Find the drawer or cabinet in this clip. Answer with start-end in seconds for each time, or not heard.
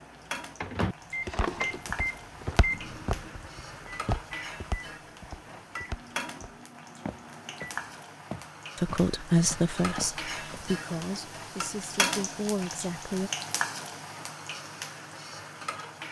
1.2-2.6.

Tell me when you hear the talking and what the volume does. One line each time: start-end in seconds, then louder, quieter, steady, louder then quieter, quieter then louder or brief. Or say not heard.
8.8-13.3 quieter then louder.